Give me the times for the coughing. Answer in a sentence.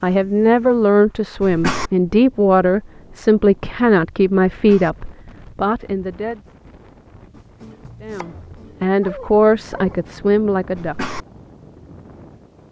You can hear the coughing from 1.4 to 1.9 s, from 4.5 to 4.9 s and from 10.8 to 11.2 s.